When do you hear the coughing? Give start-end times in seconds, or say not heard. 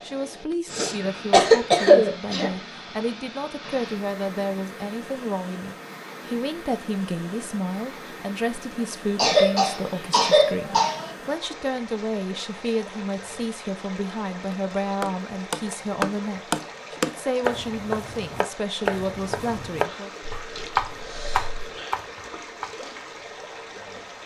0.7-2.5, 9.2-11.1, 20.2-21.7.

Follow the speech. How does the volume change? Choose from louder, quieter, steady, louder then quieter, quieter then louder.
steady.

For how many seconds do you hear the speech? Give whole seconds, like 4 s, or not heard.
20 s.